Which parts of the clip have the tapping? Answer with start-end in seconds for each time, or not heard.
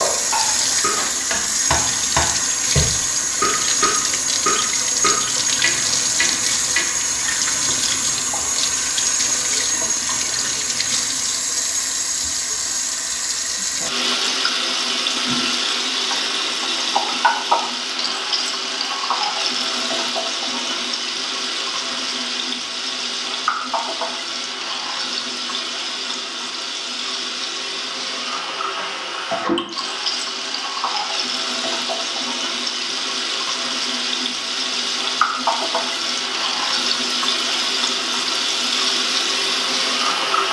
0.0-6.8.